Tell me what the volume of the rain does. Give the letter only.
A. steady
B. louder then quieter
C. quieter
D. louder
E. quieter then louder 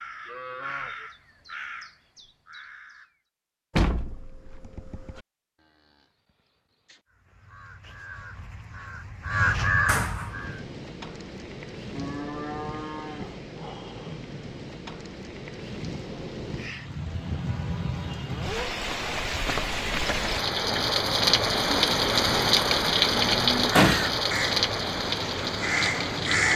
D.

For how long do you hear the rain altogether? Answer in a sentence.
The rain can be heard for 16 seconds in total.